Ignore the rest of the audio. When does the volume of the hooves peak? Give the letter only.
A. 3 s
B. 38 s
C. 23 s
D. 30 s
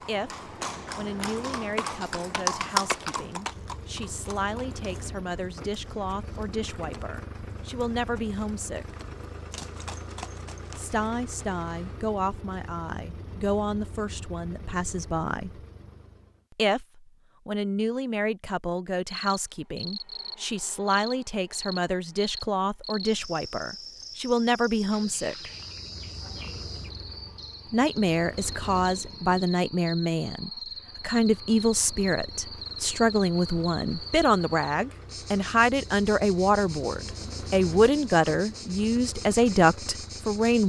A.